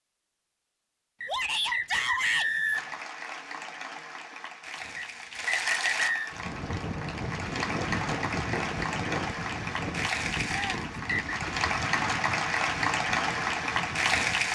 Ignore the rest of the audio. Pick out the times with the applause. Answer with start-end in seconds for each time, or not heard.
2.7-14.4.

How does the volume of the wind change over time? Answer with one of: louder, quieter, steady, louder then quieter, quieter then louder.
quieter.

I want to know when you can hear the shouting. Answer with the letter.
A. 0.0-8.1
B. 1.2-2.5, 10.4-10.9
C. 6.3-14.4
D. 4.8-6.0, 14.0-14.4
B.